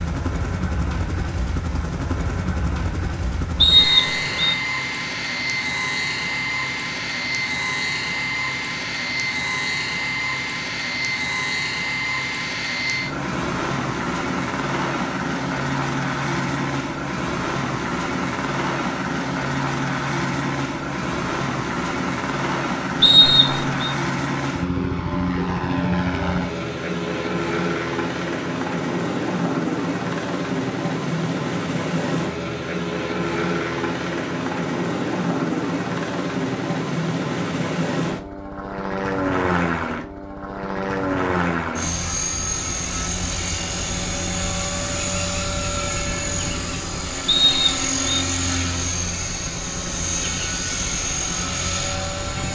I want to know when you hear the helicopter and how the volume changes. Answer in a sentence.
You can hear the helicopter from 0.0 to 52.5 s, at a steady volume.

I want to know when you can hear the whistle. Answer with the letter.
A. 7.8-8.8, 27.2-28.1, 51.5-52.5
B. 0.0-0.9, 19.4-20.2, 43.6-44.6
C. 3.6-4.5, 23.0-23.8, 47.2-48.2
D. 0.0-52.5
C.